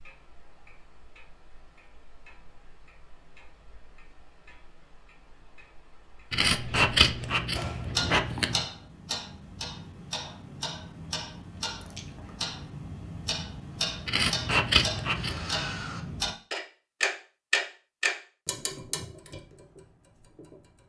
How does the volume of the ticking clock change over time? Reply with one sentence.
The volume of the ticking clock goes up.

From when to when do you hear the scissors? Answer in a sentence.
The scissors can be heard from 6.3 to 8.7 s and from 14.1 to 15.4 s.